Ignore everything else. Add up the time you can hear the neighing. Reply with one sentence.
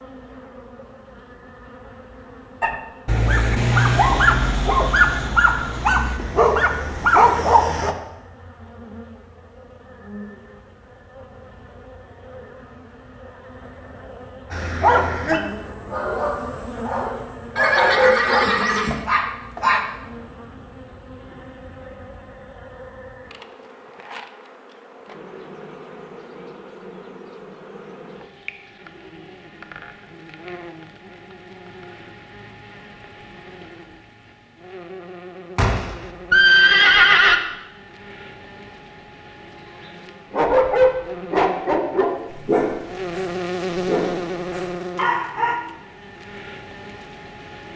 The neighing can be heard for 3 seconds in total.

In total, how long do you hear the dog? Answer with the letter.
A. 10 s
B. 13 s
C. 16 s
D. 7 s
C.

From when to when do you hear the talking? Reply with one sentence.
The talking can't be heard in this clip.